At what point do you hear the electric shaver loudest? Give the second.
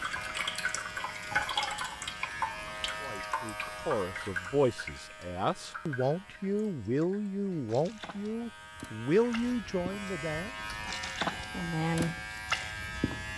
12 s.